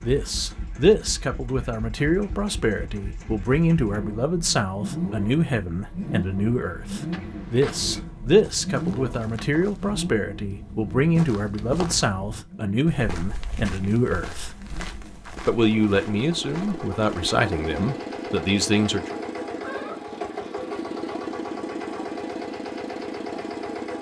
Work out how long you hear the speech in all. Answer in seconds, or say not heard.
18 s.